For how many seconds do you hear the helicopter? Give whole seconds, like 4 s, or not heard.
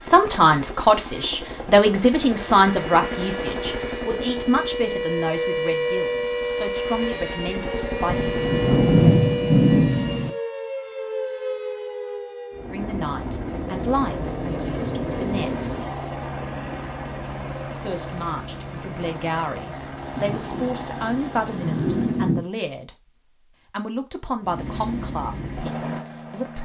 21 s.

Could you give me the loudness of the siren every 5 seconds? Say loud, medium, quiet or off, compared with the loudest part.
medium, loud, medium, off, off, off.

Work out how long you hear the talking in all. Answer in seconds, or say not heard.
19 s.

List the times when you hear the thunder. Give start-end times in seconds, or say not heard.
8.1-10.3, 20.1-22.4.